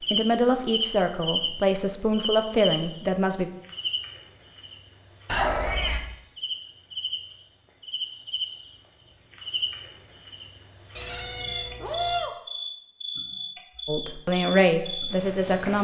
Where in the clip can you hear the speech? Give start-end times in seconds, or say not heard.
0.1-3.5, 13.8-15.7.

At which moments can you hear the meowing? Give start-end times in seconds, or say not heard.
5.2-6.0, 10.9-12.3.